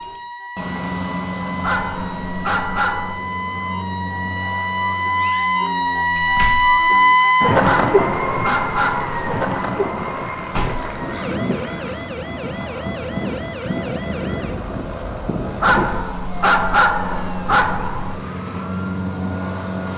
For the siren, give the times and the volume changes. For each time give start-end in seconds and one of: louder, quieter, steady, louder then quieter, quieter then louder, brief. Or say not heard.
0.0-19.9 louder then quieter.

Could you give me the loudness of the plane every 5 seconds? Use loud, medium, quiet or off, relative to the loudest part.
loud, medium, loud, loud.